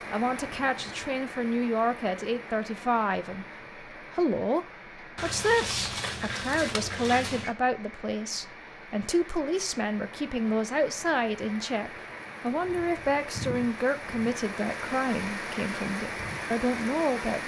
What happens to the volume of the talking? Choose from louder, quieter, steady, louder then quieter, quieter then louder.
steady.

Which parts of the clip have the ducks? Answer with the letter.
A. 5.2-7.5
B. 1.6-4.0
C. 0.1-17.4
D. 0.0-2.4
A.